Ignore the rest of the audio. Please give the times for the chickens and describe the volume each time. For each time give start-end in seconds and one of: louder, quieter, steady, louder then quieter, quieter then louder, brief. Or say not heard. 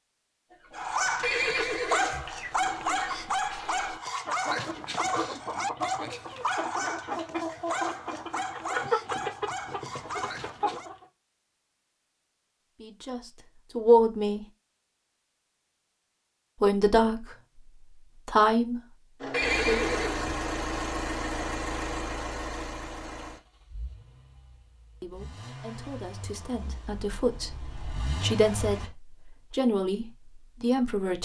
0.5-11.1 louder.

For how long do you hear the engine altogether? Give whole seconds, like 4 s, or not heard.
10 s.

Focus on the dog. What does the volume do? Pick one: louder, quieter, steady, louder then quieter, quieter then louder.
quieter.